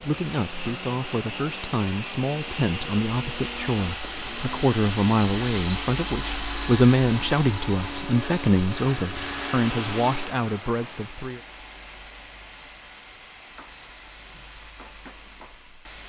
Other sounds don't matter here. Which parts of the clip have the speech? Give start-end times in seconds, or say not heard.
0.0-11.4.